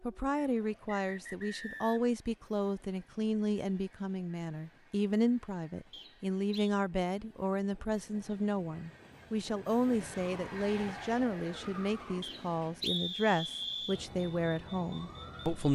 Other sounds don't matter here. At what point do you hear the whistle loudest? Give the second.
13 s.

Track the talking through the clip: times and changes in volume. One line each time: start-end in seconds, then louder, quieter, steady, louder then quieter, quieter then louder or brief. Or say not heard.
0.0-15.7 steady.